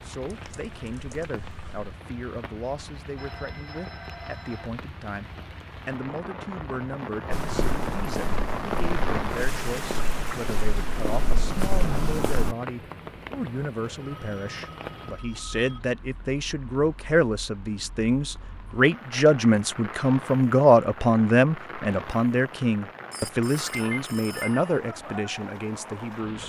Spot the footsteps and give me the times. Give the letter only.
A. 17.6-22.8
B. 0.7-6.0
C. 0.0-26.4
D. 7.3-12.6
D.